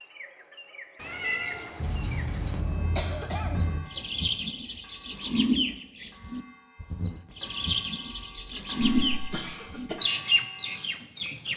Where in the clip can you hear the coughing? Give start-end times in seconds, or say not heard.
1.8-3.8, 8.1-10.0.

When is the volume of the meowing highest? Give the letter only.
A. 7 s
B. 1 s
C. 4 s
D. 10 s
B.